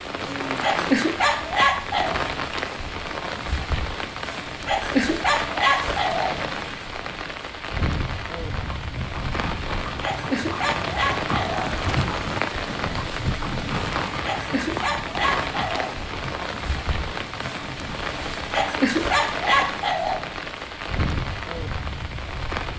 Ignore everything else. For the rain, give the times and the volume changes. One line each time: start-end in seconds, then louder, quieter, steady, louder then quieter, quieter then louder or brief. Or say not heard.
0.0-22.7 steady.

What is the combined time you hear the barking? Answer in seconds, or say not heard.
9 s.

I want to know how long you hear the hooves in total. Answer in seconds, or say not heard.
10 s.